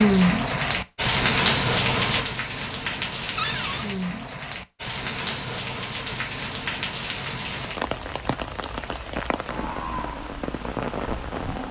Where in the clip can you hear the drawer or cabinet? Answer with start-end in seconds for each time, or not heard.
3.4-3.9.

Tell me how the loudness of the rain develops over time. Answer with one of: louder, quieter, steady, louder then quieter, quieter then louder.
quieter.